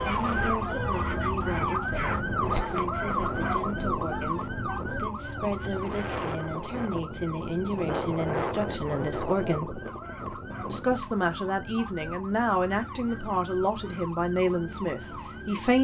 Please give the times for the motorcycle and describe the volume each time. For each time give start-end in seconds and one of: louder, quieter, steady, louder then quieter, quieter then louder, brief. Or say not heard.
not heard.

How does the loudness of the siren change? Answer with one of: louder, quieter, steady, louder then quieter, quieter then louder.
quieter.